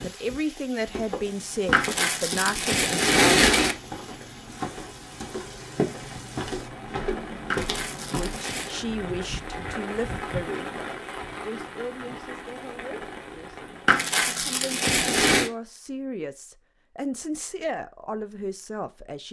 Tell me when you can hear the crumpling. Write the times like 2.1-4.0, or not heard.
1.7-3.8, 7.5-8.8, 13.8-15.5.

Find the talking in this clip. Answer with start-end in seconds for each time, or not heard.
0.0-3.5, 8.1-19.2.